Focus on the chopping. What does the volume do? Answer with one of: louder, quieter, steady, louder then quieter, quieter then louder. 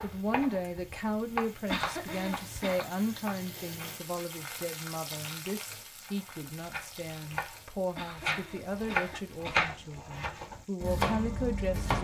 quieter then louder.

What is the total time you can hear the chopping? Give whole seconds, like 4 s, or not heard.
10 s.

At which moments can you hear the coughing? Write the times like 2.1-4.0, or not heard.
1.6-2.8, 8.0-9.8.